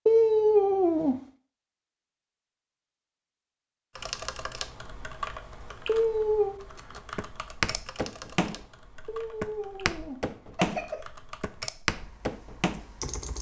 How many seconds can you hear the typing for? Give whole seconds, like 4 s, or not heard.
9 s.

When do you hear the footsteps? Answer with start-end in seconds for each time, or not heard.
7.0-12.8.